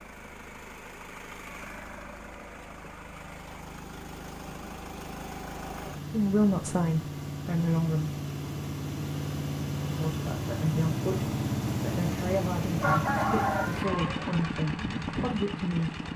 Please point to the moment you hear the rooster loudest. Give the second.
13 s.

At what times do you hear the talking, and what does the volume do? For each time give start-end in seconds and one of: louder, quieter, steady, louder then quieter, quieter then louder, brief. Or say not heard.
6.0-8.2 brief
9.8-16.0 steady.